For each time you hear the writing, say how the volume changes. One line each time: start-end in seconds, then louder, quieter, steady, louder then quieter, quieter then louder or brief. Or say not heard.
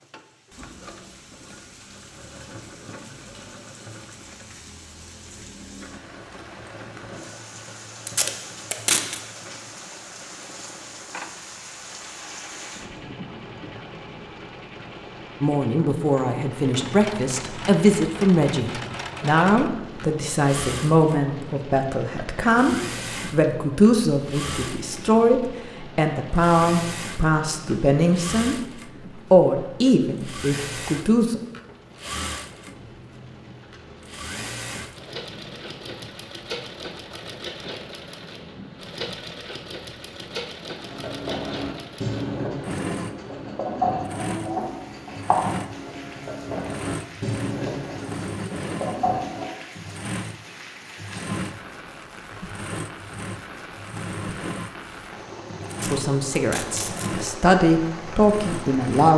40.8-49.5 steady.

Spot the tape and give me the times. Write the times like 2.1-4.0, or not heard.
8.1-9.2, 55.7-57.1.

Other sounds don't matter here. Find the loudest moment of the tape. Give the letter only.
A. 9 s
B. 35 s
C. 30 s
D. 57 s
A.